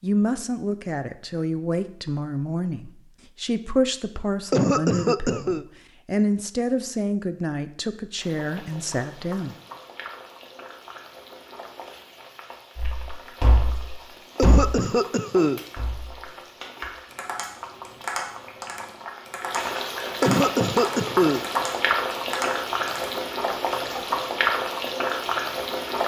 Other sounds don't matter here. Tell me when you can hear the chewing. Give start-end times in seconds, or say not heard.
not heard.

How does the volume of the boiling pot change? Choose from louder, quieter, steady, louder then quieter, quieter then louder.
louder.